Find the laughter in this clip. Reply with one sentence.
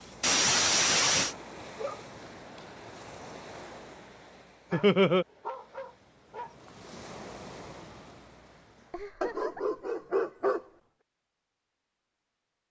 The laughter can be heard from 0.2 to 1.4 s, from 4.7 to 5.2 s and from 8.9 to 9.8 s.